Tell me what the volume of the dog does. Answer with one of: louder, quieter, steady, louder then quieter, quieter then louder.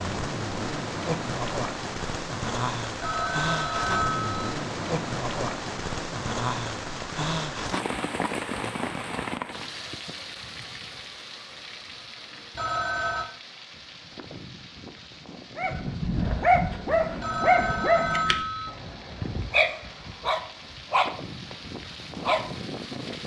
quieter.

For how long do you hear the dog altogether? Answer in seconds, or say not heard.
7 s.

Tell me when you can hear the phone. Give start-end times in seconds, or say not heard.
3.0-4.5, 12.6-13.3, 17.2-18.7.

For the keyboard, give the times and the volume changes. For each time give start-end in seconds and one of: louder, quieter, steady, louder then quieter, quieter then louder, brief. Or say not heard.
not heard.